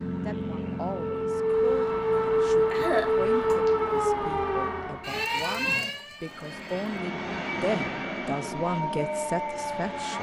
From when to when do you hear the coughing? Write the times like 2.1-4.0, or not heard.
2.1-3.5.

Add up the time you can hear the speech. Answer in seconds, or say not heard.
10 s.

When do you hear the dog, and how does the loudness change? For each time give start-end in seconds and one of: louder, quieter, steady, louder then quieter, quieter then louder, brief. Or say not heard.
not heard.